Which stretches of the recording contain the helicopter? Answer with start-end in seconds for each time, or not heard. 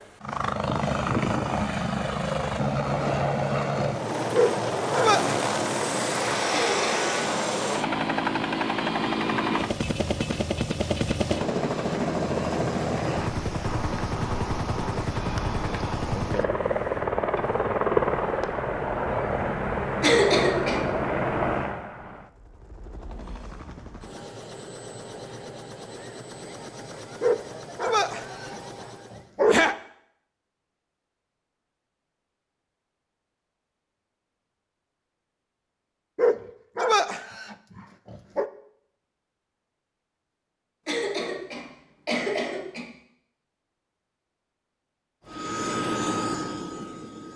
0.0-29.3, 45.2-47.3.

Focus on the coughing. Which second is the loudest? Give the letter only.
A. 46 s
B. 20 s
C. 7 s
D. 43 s
B.